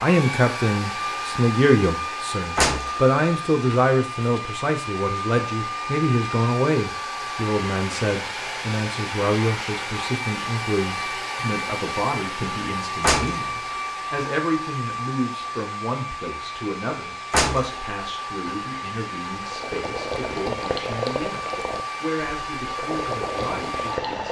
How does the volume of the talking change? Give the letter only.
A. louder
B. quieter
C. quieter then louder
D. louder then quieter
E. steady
B.